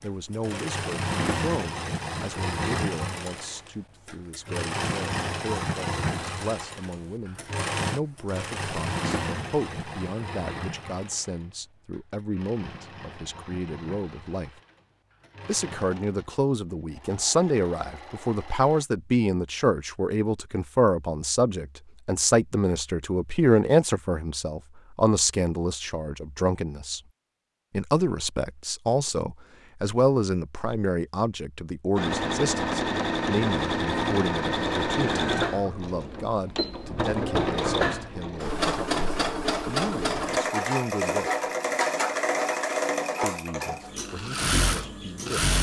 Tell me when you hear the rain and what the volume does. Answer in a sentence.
The rain can't be heard in this clip.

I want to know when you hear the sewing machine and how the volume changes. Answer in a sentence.
The sewing machine can be heard from 0.0 to 18.9 s, getting quieter; and from 31.9 to 45.5 s, at a steady volume.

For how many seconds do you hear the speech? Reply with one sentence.
The speech can be heard for 42 seconds in total.